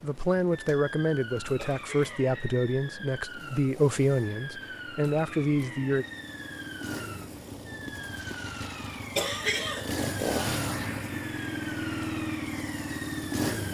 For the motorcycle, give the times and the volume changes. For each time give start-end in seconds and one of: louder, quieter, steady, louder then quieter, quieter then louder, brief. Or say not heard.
0.0-13.7 louder.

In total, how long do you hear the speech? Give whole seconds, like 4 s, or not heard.
6 s.